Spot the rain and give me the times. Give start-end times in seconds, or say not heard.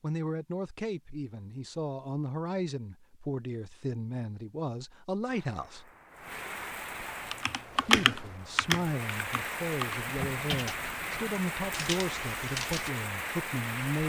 5.2-14.0.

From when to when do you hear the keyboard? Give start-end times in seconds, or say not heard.
7.2-12.9.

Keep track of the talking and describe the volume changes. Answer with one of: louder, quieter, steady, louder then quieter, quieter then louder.
steady.